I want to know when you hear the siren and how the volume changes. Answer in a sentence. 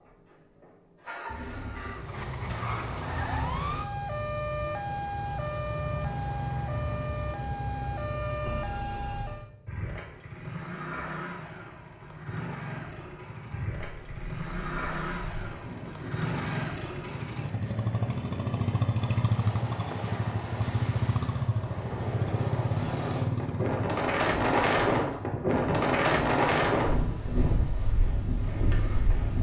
You can hear the siren from 1.9 to 9.5 s, at a steady volume.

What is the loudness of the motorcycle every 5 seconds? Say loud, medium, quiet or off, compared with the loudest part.
medium, medium, medium, loud, loud, medium.